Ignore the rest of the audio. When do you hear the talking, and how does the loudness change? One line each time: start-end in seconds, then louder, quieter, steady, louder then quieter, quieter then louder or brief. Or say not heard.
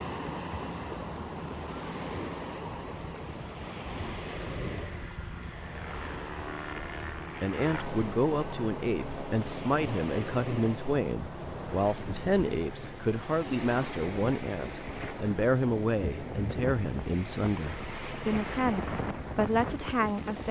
7.4-20.4 steady.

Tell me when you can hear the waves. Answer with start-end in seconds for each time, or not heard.
0.0-20.4.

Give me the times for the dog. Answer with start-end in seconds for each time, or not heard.
not heard.